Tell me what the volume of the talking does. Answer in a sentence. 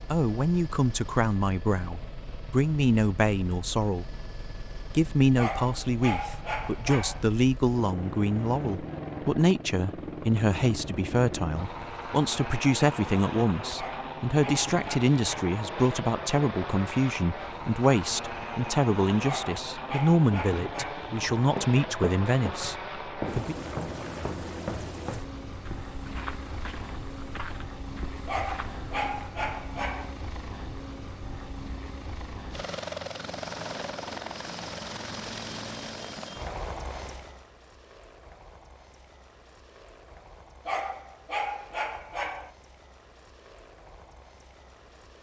The volume of the talking stays about the same.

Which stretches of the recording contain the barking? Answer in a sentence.
The barking can be heard from 5.3 to 7.2 s, from 13.8 to 15.6 s, from 19.2 to 21.1 s, from 28.2 to 30.1 s and from 40.6 to 42.5 s.